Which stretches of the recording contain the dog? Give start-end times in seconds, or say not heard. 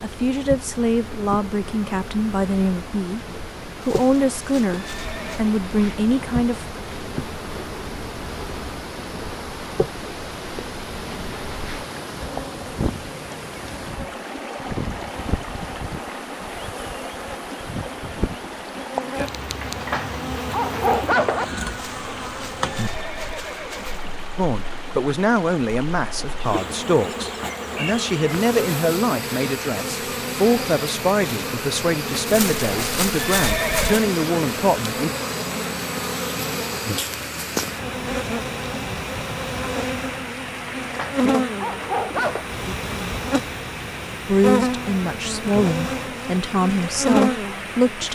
19.6-21.4, 40.8-42.5.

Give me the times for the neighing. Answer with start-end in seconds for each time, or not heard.
3.8-5.5, 21.7-24.2, 32.2-34.0.